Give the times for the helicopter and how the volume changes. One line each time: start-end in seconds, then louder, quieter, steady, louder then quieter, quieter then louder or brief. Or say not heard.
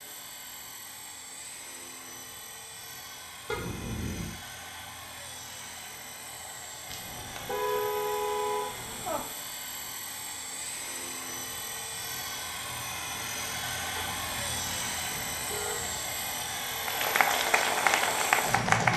0.0-18.9 louder.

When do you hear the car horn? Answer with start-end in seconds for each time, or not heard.
3.5-4.3, 6.9-9.2, 13.9-15.9.